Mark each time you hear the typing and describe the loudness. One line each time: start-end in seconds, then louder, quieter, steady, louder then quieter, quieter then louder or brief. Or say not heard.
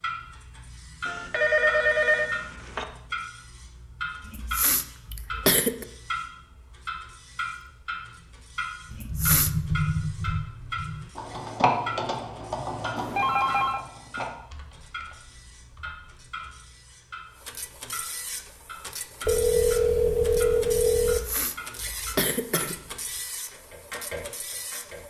8.8-16.5 quieter.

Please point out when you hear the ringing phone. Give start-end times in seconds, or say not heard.
1.1-2.9, 12.9-13.8, 19.2-21.2.